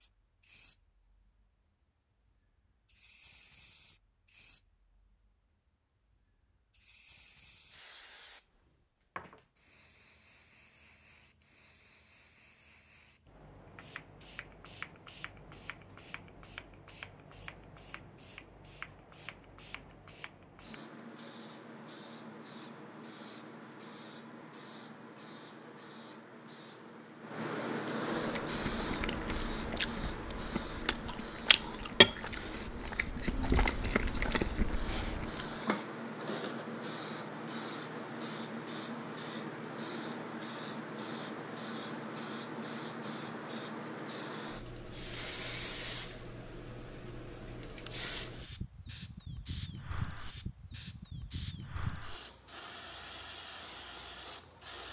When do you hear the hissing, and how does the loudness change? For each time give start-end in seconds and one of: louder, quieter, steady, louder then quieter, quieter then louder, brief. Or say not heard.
0.0-54.8 louder.